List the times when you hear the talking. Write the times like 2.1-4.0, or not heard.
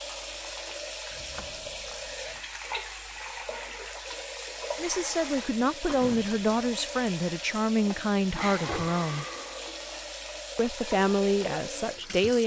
4.8-9.2, 10.6-12.4.